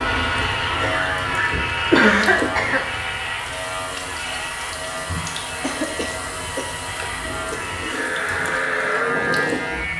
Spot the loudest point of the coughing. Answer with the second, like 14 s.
2 s.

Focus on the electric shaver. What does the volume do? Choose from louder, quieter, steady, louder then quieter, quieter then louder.
quieter then louder.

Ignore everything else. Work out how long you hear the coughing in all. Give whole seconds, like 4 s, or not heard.
3 s.